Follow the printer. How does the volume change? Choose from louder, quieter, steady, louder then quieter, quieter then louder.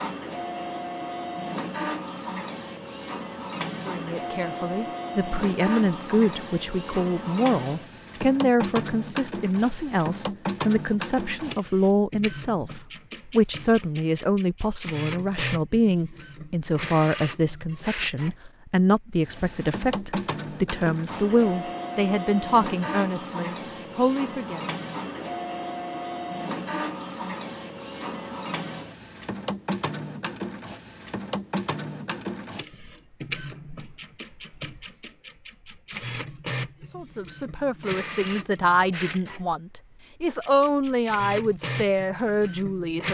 steady.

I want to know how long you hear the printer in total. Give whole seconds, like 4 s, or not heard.
43 s.